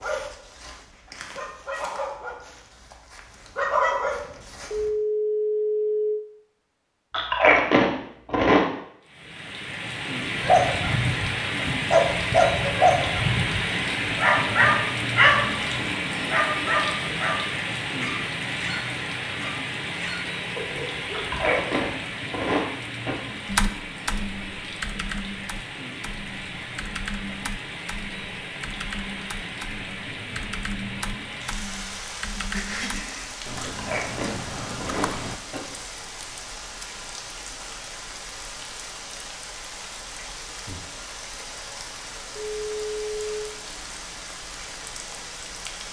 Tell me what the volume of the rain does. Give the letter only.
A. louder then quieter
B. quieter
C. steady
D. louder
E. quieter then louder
B.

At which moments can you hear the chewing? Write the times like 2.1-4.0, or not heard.
7.1-8.7, 21.1-23.1, 33.6-35.6.